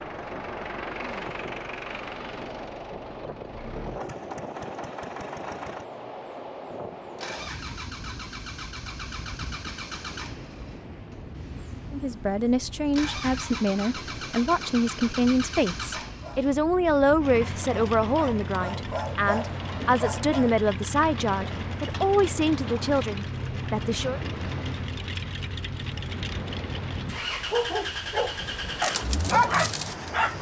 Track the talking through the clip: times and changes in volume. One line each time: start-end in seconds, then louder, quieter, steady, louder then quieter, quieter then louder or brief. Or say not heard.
11.9-24.2 steady.